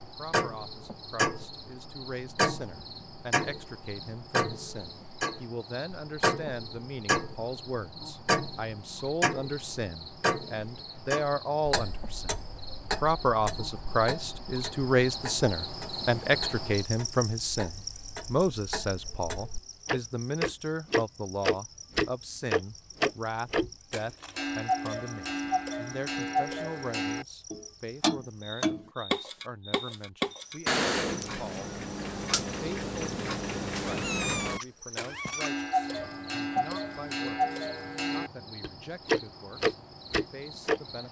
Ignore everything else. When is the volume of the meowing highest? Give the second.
34 s.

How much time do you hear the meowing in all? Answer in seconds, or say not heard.
2 s.